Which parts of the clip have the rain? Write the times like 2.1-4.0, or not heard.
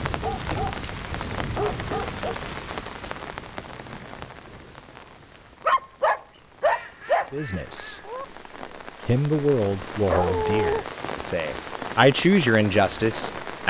0.0-13.6.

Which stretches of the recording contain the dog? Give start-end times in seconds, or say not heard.
0.2-2.4, 5.7-7.3, 10.1-10.8.